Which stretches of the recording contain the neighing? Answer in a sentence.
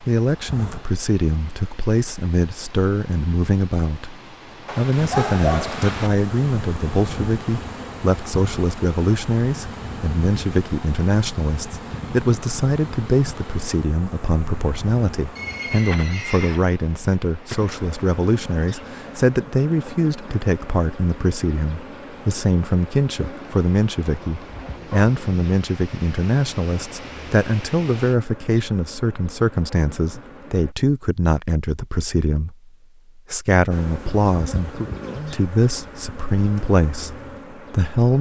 The neighing can be heard from 15.3 to 16.6 s.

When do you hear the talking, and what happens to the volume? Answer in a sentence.
You can hear the talking from 0.0 to 38.1 s, at a steady volume.